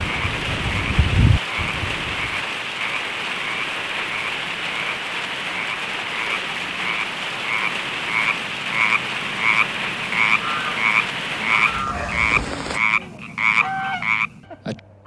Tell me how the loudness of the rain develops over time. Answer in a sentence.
The volume of the rain stays about the same.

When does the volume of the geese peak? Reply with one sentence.
The volume of the geese peaks at 1 second.